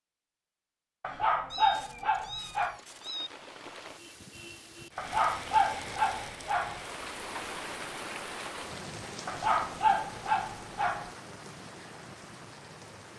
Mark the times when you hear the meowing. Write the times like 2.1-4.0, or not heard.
1.5-3.3.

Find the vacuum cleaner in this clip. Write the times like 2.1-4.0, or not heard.
not heard.